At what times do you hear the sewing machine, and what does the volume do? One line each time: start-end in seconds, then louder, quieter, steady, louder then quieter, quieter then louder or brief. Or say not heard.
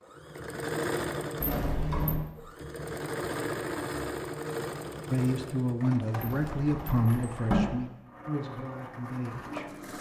0.0-9.9 quieter.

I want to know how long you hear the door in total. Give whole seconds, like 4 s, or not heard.
2 s.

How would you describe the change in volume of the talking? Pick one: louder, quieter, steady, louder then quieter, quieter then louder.
quieter.